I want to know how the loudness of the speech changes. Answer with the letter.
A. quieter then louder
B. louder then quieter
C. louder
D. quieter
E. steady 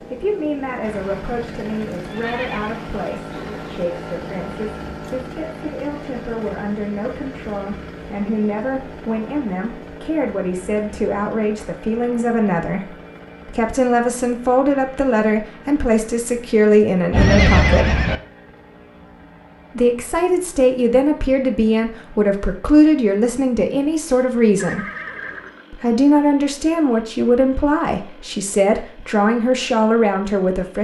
C.